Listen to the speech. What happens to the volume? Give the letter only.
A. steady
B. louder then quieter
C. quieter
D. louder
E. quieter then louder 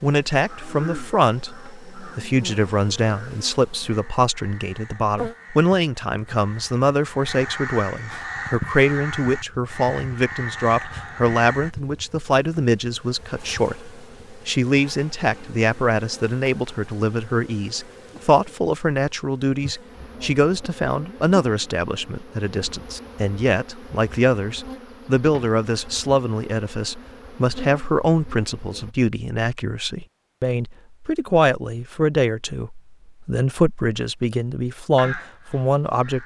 A.